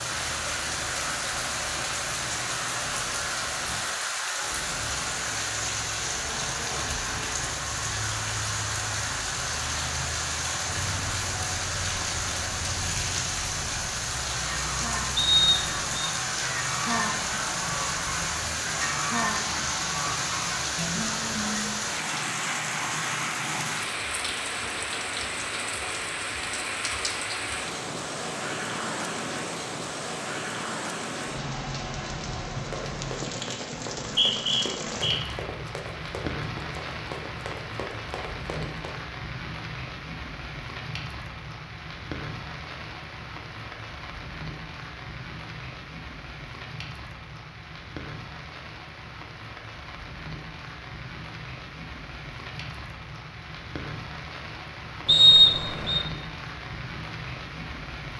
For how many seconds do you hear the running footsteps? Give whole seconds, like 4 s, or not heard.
6 s.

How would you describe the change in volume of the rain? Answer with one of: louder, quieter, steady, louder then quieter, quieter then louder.
quieter.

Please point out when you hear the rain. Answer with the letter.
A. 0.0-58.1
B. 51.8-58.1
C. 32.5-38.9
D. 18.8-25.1
A.